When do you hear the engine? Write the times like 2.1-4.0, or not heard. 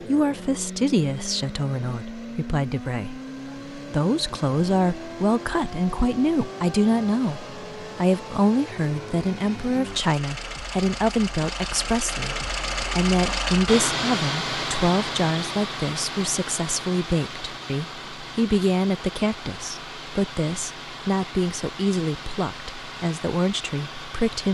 0.0-24.4.